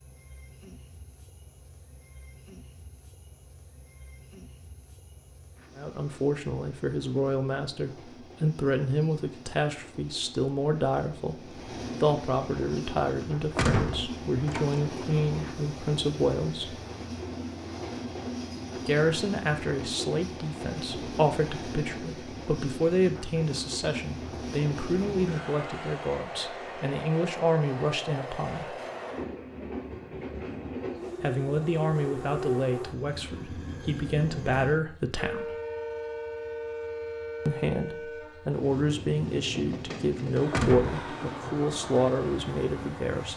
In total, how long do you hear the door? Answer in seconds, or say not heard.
2 s.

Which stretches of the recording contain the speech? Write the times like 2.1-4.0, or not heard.
5.8-16.8, 18.8-28.8, 31.2-35.5, 37.5-43.3.